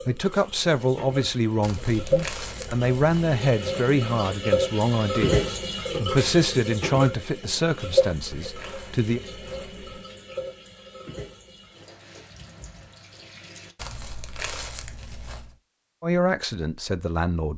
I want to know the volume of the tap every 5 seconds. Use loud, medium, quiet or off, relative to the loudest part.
loud, loud, quiet, off.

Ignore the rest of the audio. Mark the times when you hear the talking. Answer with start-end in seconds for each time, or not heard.
0.0-9.2, 16.0-17.5.